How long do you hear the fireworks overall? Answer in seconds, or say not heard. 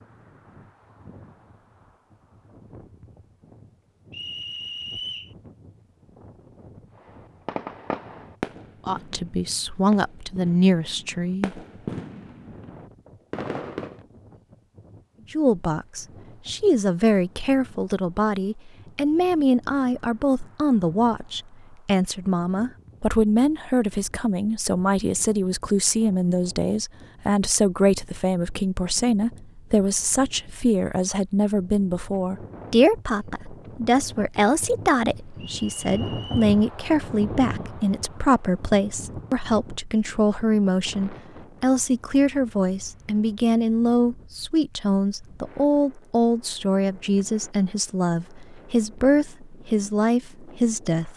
7 s.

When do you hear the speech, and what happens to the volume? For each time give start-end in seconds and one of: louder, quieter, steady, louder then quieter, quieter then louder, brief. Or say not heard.
8.8-11.6 brief
15.3-51.1 steady.